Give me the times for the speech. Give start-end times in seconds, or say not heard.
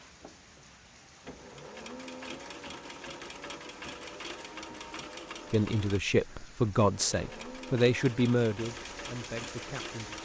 5.5-10.2.